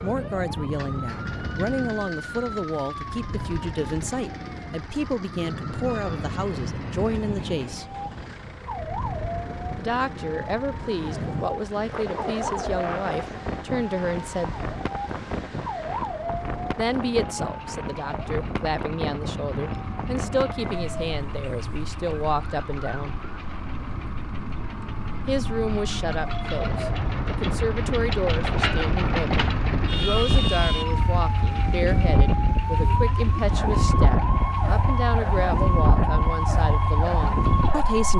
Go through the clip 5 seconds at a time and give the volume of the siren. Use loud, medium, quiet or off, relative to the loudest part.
medium, medium, medium, medium, medium, medium, loud, loud.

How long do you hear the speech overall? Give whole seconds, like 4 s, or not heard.
32 s.